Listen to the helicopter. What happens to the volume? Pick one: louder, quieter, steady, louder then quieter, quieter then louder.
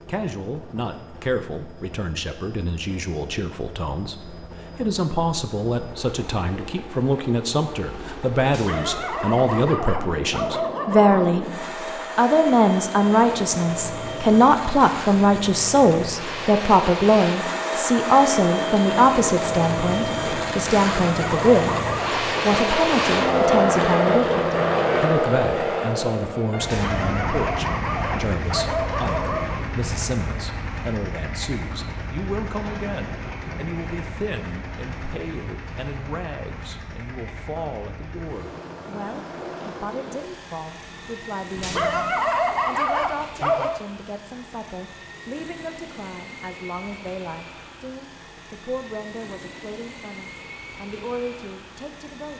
louder then quieter.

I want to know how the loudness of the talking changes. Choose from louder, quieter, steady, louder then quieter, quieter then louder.
louder then quieter.